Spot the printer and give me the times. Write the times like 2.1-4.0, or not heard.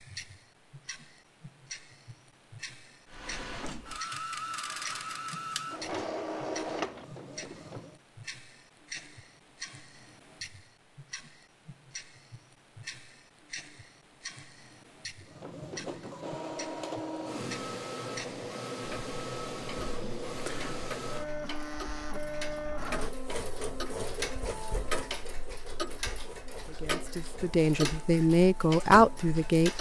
3.0-8.0, 15.2-29.7.